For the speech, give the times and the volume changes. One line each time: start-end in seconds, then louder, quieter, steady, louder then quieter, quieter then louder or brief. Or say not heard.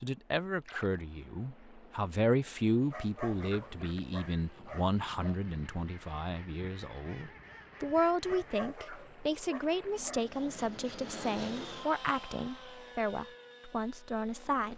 0.0-14.7 steady.